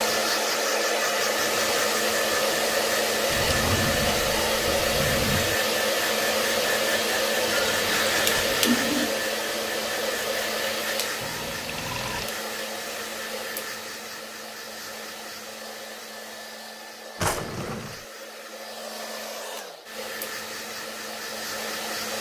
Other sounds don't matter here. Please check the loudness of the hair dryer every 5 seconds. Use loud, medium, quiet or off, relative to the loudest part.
loud, loud, medium, quiet, medium.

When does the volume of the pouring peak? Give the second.
9 s.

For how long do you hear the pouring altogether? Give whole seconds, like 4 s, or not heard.
3 s.